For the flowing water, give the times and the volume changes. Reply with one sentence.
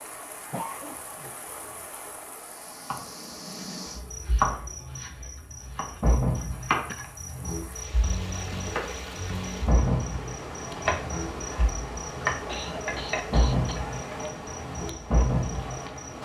You can hear the flowing water from 0.0 to 16.2 s, getting quieter then louder.